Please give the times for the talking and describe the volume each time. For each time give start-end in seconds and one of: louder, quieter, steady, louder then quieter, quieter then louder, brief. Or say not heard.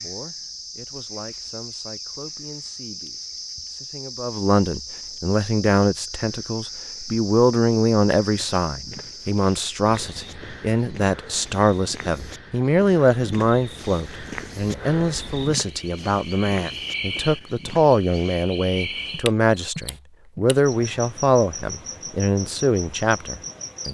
0.0-23.8 louder.